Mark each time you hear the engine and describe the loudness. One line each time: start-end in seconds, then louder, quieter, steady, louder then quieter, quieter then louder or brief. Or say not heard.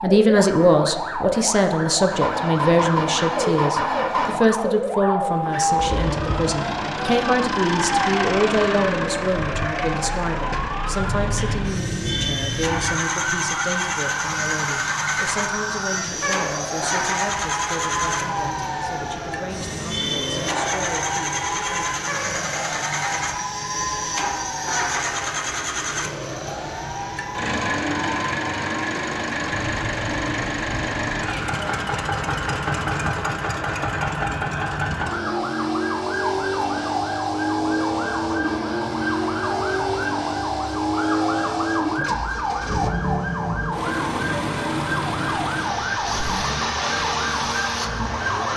2.1-48.5 steady.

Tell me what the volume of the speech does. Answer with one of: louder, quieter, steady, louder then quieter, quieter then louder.
quieter.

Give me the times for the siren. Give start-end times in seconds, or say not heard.
0.0-48.5.